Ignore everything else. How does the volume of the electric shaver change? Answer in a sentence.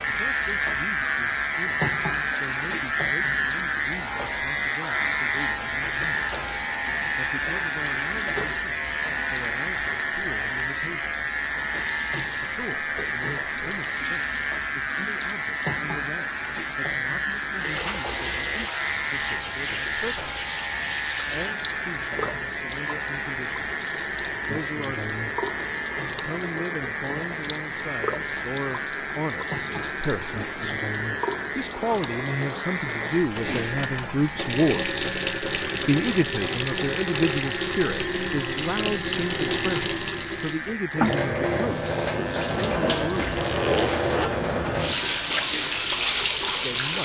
The volume of the electric shaver goes down.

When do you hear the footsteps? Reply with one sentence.
You can't hear the footsteps here.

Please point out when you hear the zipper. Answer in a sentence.
The zipper can be heard from 43.3 to 44.7 s.